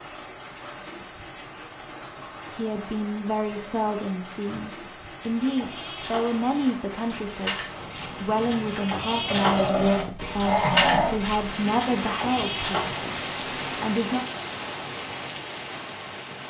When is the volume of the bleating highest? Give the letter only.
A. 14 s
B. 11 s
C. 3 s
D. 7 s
B.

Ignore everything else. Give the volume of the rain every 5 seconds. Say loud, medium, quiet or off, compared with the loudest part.
medium, medium, loud, loud.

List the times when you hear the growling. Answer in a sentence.
You can hear the growling from 9.2 to 11.2 s.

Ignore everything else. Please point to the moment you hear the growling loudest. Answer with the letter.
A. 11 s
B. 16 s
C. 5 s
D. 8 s
A.